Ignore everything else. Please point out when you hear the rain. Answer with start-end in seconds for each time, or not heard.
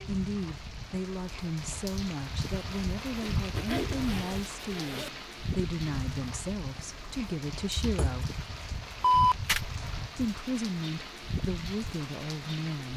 0.0-12.9.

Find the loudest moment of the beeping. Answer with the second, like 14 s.
9 s.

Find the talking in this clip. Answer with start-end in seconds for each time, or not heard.
0.1-8.3, 10.2-12.9.